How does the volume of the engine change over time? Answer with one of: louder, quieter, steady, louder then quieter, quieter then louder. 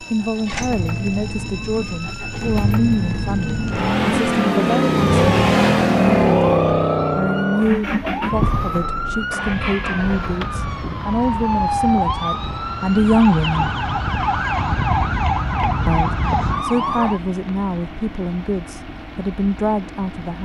louder then quieter.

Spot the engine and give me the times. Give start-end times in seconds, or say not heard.
0.0-20.4.